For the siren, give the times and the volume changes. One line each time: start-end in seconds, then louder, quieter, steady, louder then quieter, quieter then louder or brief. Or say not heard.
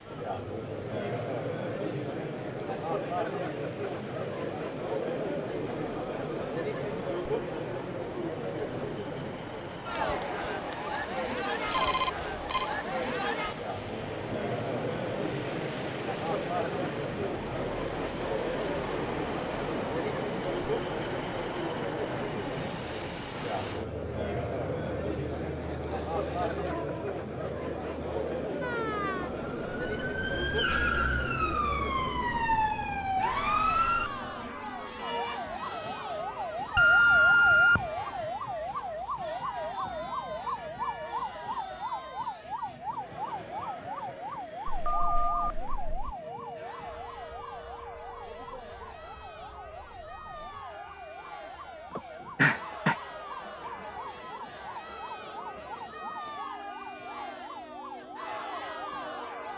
28.6-59.5 quieter.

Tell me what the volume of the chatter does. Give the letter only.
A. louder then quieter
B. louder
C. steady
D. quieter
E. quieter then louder
D.